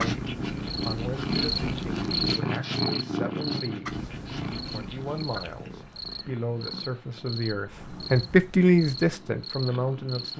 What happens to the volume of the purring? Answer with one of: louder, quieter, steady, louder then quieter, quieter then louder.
quieter.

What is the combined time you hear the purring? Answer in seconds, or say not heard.
10 s.